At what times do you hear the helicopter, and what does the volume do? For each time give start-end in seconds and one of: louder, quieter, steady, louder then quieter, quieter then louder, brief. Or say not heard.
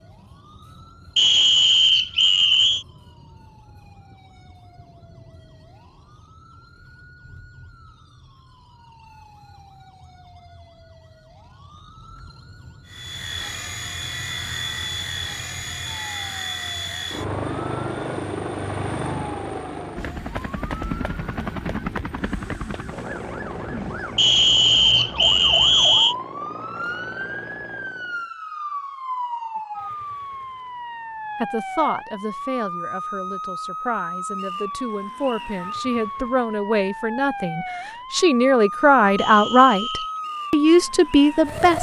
12.8-28.3 quieter.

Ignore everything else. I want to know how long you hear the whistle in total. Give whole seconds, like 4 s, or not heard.
5 s.